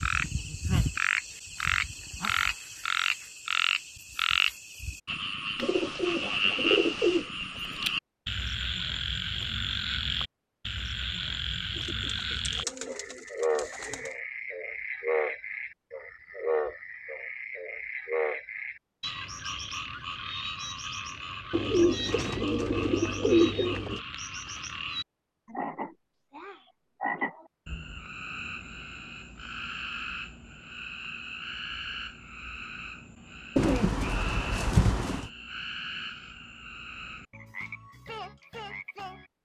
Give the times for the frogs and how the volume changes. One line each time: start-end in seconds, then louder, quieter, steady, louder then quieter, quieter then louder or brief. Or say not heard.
0.0-39.3 quieter.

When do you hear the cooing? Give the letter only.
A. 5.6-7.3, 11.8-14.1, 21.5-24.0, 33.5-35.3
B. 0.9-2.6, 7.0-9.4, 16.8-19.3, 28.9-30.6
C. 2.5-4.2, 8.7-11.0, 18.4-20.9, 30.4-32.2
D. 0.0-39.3
A.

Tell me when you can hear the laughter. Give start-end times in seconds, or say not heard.
not heard.